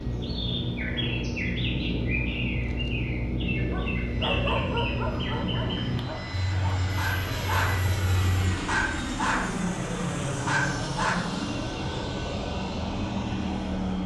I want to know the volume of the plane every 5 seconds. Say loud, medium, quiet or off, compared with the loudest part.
quiet, loud, loud.